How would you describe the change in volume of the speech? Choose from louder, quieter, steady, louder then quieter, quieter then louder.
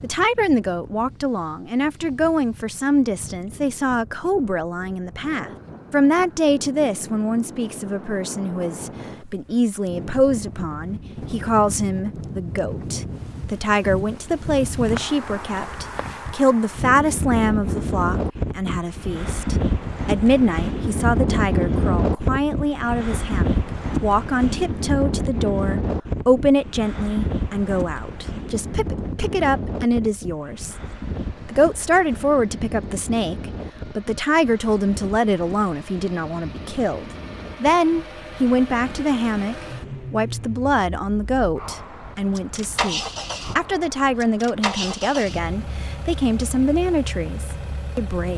steady.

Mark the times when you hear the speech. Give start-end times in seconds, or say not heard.
0.0-30.8, 31.4-48.3.